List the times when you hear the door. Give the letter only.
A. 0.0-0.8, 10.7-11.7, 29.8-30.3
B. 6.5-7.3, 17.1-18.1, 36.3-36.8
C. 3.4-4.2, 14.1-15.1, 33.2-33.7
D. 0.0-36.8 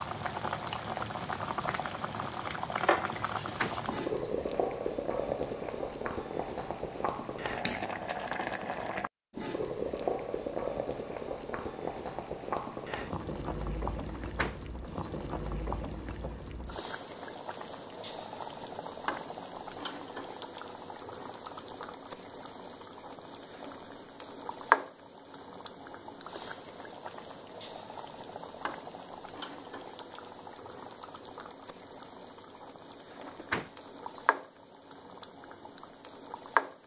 C.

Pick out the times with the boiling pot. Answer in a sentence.
You can hear the boiling pot from 0.0 to 36.8 s.